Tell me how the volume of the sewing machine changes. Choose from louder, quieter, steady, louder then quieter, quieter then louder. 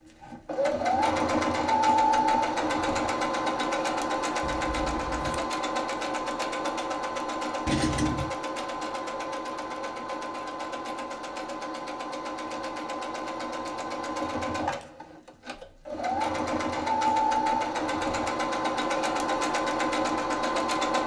quieter then louder.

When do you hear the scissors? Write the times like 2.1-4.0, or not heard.
4.4-5.5, 7.7-8.3.